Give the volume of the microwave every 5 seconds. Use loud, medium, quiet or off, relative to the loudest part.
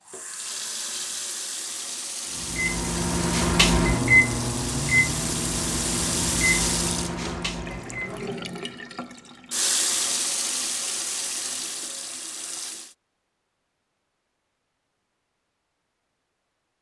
loud, medium, off, off.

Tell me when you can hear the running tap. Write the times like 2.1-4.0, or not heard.
0.1-12.9.